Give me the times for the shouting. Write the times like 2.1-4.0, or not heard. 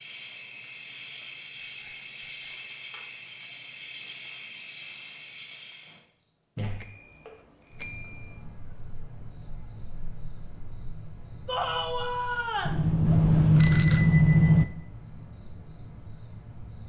11.4-12.8.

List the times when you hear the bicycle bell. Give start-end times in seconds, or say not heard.
1.6-2.5, 6.6-8.2, 12.7-14.7.